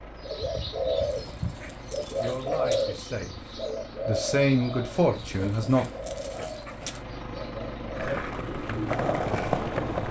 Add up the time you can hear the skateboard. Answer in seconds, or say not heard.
2 s.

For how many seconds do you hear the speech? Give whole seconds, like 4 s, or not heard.
4 s.